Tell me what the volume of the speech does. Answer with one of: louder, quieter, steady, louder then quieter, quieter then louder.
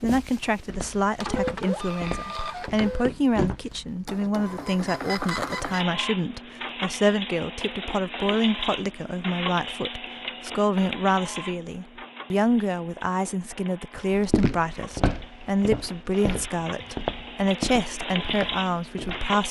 steady.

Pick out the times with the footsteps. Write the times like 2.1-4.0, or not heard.
0.0-3.5, 14.1-19.2.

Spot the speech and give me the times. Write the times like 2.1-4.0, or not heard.
0.0-19.4.